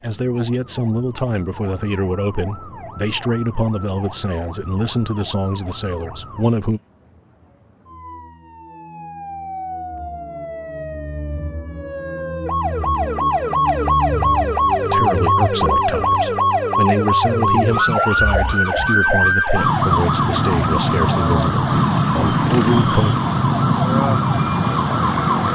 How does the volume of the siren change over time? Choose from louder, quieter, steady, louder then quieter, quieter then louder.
louder.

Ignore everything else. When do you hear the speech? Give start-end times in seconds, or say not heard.
0.0-6.8, 14.8-23.1.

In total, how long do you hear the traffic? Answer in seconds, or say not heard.
not heard.